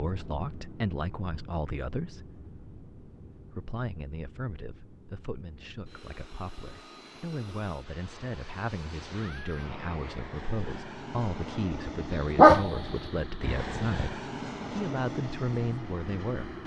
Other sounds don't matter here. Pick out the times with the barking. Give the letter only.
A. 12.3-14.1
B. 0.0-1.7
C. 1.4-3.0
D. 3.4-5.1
A.